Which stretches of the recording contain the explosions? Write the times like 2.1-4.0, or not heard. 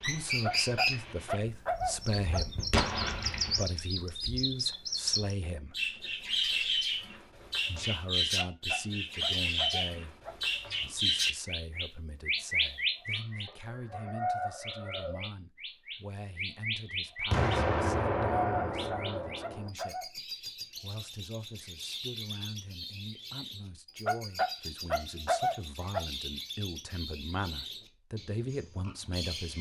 2.7-3.6, 17.3-19.7.